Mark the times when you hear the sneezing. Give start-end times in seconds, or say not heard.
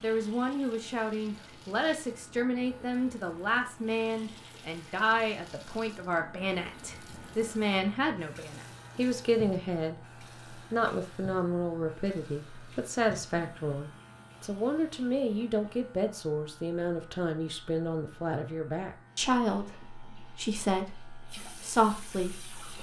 not heard.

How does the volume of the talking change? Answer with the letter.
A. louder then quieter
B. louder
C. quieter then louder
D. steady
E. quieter
D.